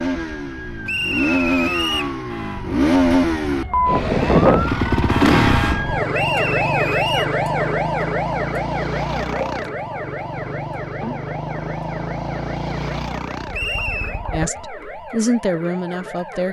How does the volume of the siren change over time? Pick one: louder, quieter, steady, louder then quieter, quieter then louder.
louder then quieter.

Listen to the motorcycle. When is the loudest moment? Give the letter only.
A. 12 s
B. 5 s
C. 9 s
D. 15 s
B.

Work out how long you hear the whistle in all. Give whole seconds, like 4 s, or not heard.
3 s.